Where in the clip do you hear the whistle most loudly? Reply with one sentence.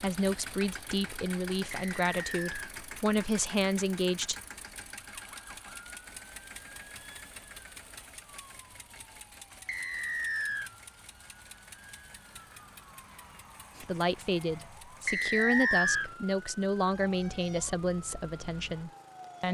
The volume of the whistle peaks at 16 seconds.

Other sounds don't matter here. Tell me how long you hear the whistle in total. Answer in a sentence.
The whistle can be heard for 3 seconds in total.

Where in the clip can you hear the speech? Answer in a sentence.
The speech can be heard from 0.0 to 4.3 s and from 13.8 to 19.4 s.